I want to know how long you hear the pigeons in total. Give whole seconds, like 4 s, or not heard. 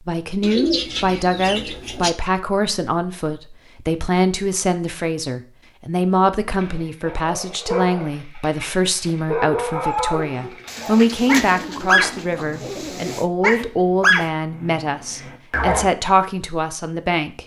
4 s.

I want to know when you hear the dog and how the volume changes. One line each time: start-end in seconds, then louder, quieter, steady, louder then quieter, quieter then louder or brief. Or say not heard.
6.5-15.9 louder.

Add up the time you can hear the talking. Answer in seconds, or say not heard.
17 s.